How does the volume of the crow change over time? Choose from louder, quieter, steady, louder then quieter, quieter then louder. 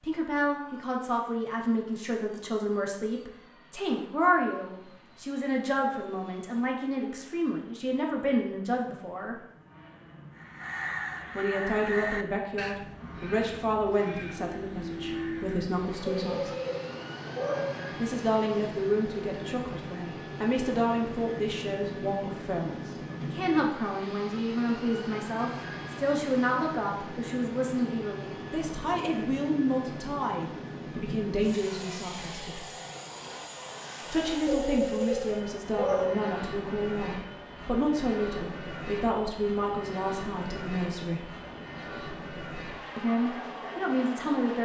quieter.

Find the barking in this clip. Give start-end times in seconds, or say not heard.
16.1-17.9, 34.5-36.4.